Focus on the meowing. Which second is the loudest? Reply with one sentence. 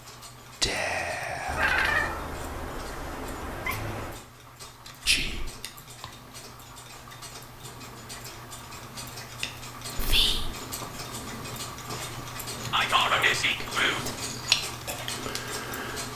The loudest moment of the meowing is at 2 seconds.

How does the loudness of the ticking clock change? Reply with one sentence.
The volume of the ticking clock goes up.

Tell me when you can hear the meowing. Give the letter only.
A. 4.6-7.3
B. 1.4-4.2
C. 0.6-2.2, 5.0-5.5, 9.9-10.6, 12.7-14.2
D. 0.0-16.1
B.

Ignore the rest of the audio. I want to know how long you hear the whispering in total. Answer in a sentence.
The whispering can be heard for 4 seconds in total.